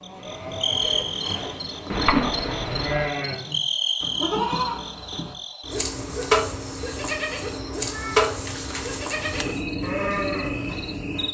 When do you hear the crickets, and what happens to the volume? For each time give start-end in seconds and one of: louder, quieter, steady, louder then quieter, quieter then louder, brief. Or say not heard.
0.0-11.2 steady.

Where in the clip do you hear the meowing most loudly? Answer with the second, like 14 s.
2 s.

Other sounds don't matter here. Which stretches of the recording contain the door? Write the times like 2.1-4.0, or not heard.
not heard.